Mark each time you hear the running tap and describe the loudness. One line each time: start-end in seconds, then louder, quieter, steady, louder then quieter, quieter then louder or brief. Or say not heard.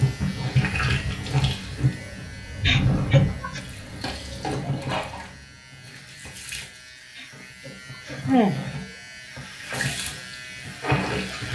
0.0-11.5 quieter then louder.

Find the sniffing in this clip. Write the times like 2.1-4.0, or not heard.
2.6-3.6, 7.2-8.8.